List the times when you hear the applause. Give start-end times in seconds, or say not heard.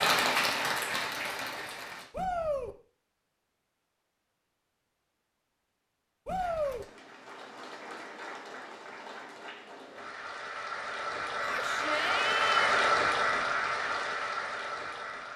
0.0-2.1, 6.3-15.3.